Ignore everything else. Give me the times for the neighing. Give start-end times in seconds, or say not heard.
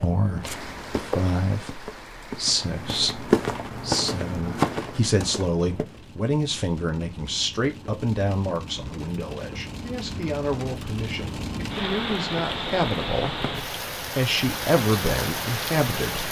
not heard.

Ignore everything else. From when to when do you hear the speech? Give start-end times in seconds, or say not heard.
0.0-16.2.